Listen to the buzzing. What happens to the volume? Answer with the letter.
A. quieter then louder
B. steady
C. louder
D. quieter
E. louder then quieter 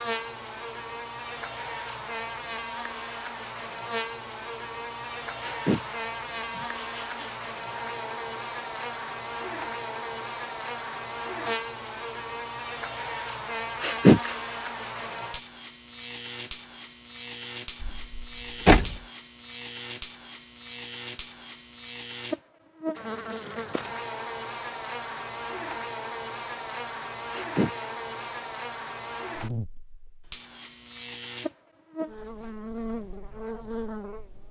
B.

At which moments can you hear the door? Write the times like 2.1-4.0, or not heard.
17.8-19.0.